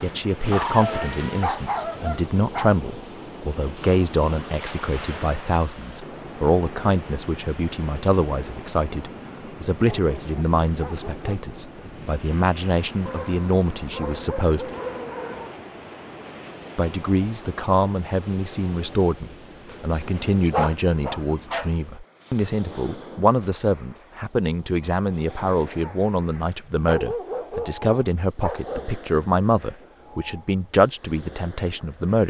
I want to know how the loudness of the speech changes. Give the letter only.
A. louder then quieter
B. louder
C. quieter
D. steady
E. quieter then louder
D.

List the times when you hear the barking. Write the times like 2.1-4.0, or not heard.
0.5-2.8, 9.8-11.4, 13.1-15.6, 20.5-21.7, 26.8-29.1.